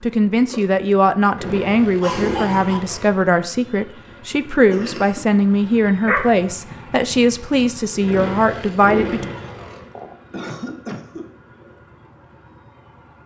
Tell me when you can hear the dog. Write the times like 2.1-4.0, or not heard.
6.0-7.8.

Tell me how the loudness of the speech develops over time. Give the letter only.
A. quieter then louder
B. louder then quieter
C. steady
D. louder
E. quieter
C.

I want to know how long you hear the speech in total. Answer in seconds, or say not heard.
9 s.